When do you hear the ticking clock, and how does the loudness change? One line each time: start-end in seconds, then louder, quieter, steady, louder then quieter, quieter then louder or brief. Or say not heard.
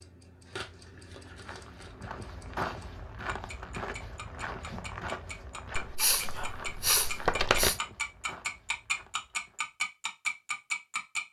0.0-11.2 louder.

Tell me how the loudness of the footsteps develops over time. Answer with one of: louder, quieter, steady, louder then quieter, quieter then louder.
quieter.